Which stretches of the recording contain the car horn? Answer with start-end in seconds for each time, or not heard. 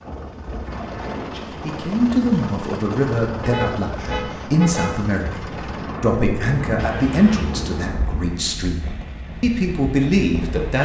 3.4-4.9.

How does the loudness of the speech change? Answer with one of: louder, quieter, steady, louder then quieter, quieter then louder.
steady.